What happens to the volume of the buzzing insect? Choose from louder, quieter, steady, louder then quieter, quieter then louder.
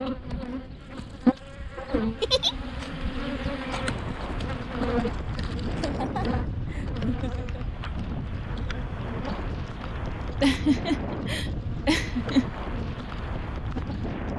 quieter.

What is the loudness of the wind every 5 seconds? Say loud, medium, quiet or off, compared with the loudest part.
medium, loud, loud.